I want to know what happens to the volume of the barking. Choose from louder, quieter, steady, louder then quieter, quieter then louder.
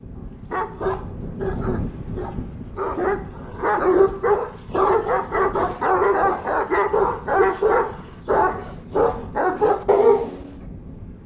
louder.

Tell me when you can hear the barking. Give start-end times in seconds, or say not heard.
0.5-10.6.